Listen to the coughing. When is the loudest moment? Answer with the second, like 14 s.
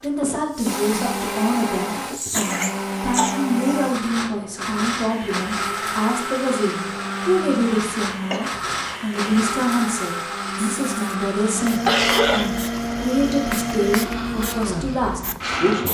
12 s.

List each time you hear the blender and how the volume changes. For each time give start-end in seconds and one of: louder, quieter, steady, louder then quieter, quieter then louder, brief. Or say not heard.
0.0-15.8 steady.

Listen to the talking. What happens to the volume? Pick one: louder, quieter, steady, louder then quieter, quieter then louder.
steady.